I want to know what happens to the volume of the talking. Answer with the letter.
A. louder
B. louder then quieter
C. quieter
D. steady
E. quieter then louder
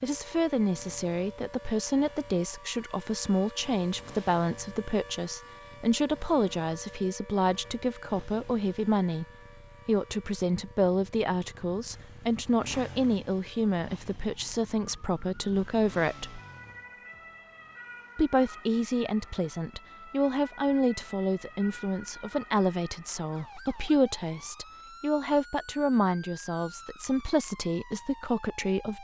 D.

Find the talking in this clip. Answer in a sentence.
The talking can be heard from 0.0 to 9.2 s, from 9.8 to 16.4 s and from 18.1 to 28.9 s.